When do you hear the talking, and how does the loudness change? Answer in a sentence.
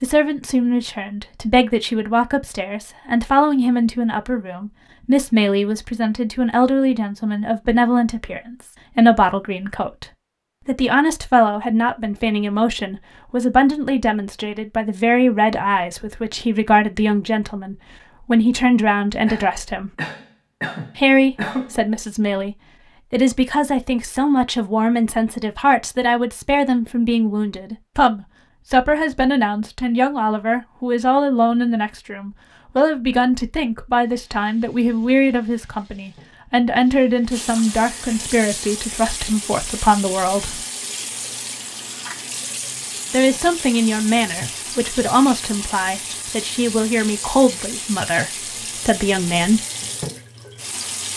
The talking can be heard from 0.0 to 10.1 s, at a steady volume; from 10.7 to 19.9 s, at a steady volume; from 20.9 to 40.6 s, at a steady volume; and from 43.1 to 49.6 s, at a steady volume.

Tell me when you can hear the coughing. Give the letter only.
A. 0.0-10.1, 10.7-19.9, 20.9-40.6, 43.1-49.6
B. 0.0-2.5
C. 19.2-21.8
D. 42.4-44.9
C.